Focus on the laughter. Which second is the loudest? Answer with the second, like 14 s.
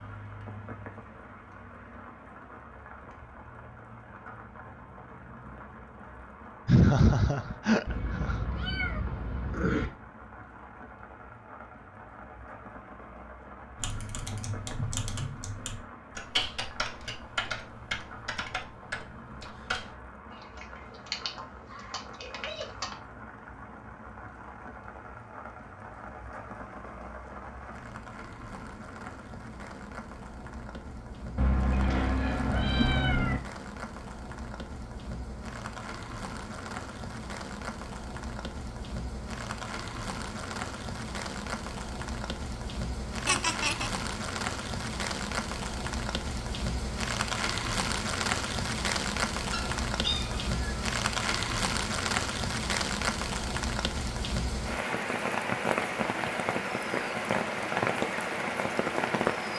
7 s.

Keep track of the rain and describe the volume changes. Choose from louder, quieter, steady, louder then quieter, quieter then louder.
louder.